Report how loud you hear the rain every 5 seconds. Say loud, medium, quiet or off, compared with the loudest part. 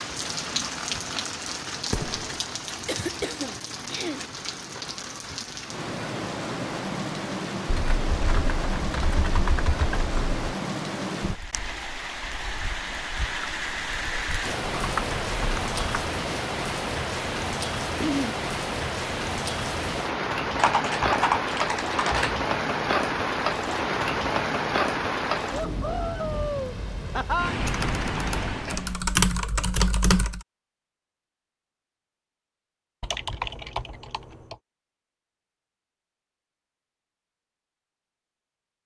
medium, medium, medium, loud, loud, loud, off, off.